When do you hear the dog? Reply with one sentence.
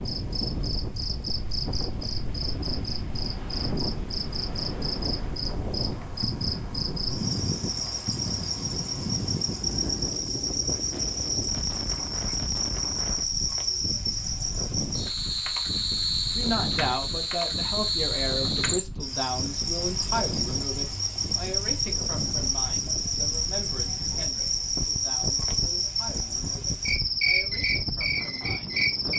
The dog can't be heard in this clip.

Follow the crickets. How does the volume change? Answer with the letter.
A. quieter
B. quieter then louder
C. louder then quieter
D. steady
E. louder
E.